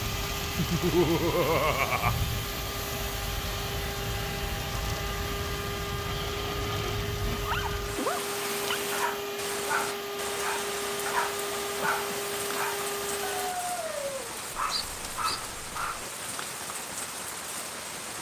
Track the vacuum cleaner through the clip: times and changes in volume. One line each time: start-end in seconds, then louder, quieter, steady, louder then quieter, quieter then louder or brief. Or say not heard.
0.0-13.6 steady.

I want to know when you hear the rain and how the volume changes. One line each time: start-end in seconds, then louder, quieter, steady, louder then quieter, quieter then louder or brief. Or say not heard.
0.0-18.1 steady.